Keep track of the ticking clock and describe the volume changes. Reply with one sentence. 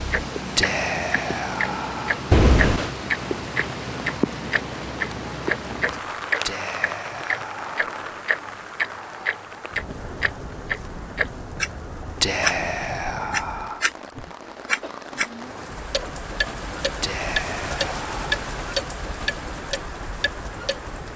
The volume of the ticking clock goes down.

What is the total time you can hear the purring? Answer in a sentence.
You can't hear the purring here.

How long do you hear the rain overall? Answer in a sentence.
The rain can be heard for 21 seconds in total.